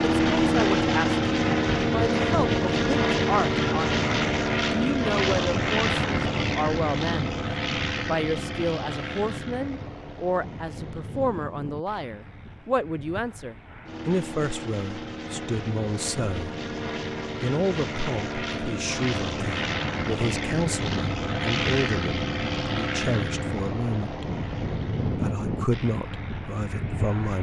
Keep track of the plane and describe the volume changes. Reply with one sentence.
The volume of the plane goes down, then up.